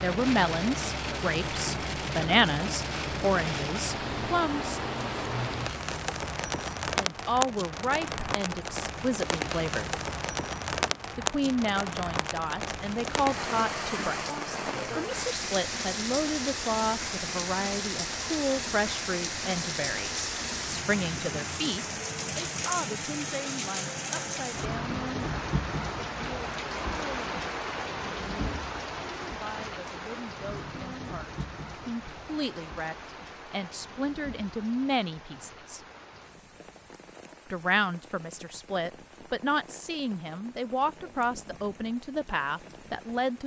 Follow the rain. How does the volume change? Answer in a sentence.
The loudness of the rain goes down.